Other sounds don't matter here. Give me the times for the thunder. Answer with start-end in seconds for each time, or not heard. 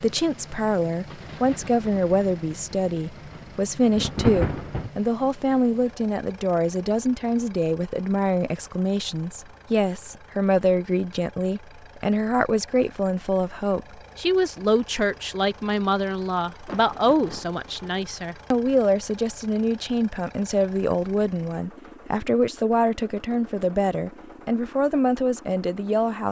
1.1-4.9, 16.6-18.0.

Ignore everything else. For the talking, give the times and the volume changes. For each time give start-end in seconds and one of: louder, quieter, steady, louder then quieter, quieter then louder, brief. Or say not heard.
0.0-26.2 steady.